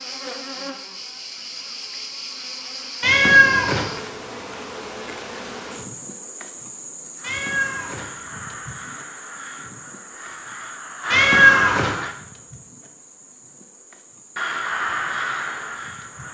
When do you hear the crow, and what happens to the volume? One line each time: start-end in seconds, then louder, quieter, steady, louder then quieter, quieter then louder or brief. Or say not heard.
7.2-12.2 louder
14.3-16.3 brief.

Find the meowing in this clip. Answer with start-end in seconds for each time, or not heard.
3.0-3.9, 7.2-8.1, 11.1-11.9.